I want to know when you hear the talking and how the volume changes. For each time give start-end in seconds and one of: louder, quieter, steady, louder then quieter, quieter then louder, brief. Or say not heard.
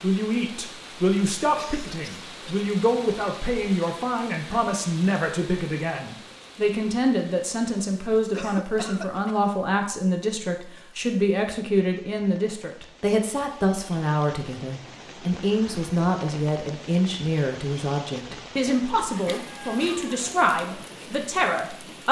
0.0-22.0 steady.